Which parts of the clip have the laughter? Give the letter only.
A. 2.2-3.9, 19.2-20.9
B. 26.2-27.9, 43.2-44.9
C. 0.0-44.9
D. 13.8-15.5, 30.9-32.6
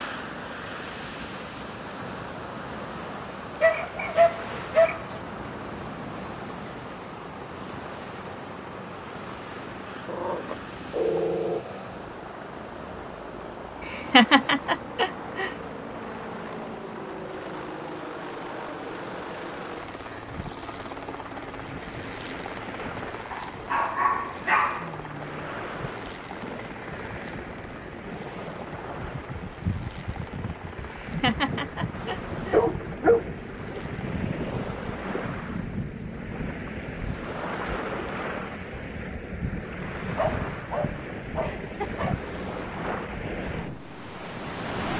D.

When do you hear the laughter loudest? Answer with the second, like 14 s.
14 s.